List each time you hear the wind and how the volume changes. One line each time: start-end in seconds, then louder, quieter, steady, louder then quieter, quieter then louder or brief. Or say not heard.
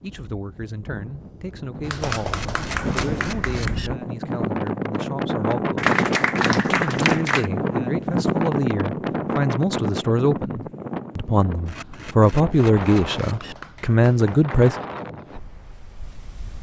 0.0-16.5 louder then quieter.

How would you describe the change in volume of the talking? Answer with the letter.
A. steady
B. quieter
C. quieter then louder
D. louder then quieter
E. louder
E.